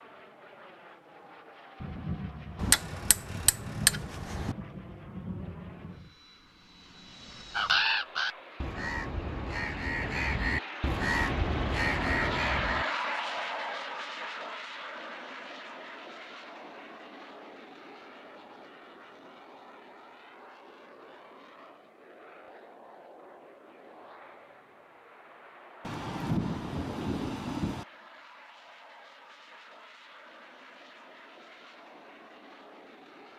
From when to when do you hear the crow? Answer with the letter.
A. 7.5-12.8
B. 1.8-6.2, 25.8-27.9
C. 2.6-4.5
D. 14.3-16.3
A.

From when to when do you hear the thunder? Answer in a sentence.
You can hear the thunder from 1.8 to 6.2 s and from 25.8 to 27.9 s.